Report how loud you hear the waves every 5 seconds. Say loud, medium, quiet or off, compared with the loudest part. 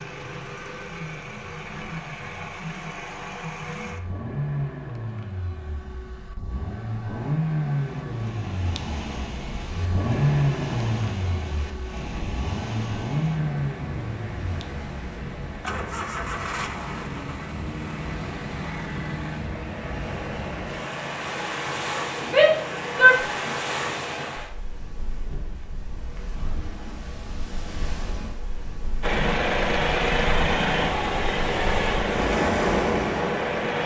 off, medium, medium, medium, medium, quiet, loud.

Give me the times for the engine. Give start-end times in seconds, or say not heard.
0.0-24.4, 29.0-33.8.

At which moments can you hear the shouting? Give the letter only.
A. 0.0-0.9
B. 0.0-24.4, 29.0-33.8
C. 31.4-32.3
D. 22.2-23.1
D.